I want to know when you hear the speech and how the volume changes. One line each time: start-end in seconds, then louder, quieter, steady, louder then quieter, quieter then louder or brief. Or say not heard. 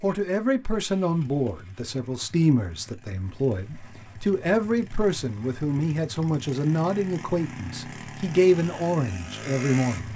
0.0-10.1 steady.